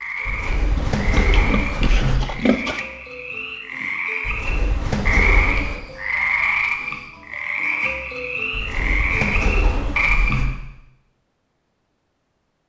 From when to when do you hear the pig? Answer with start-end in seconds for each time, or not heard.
0.8-2.8.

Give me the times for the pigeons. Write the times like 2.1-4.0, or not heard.
0.2-2.2, 4.2-5.8, 8.5-10.4.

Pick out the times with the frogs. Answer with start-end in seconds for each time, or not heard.
0.0-10.4.